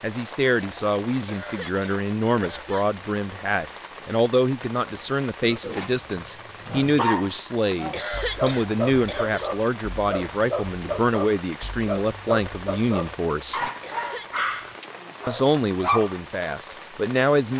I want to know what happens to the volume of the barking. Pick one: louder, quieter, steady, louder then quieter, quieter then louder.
steady.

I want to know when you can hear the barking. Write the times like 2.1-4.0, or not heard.
5.4-16.2.